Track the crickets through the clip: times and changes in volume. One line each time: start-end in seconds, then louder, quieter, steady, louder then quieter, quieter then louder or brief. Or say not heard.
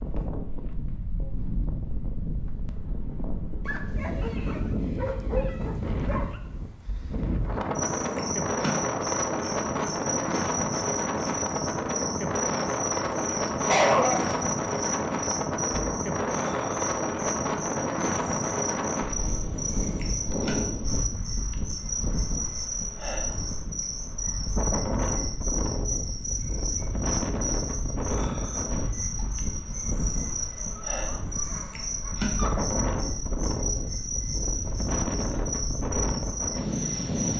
7.8-37.3 steady.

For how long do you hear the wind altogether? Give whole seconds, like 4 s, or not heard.
37 s.